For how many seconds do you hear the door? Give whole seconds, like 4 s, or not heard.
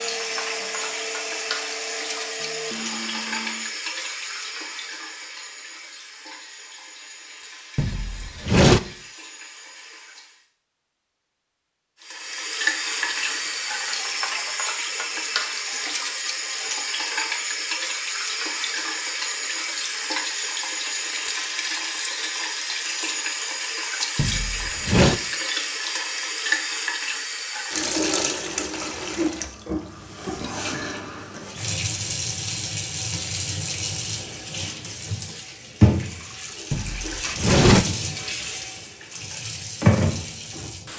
3 s.